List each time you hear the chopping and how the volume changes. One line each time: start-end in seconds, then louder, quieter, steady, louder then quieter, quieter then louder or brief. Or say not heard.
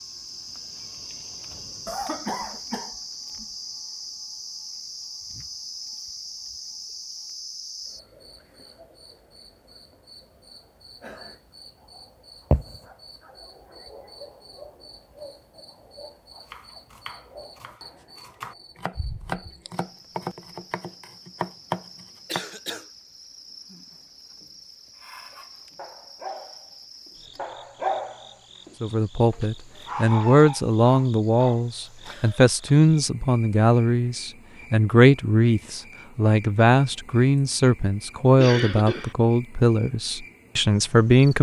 16.4-22.4 louder.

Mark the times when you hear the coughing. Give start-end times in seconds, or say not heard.
1.9-3.5, 22.2-22.9, 38.4-39.1.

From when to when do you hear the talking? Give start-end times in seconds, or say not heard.
28.8-41.3.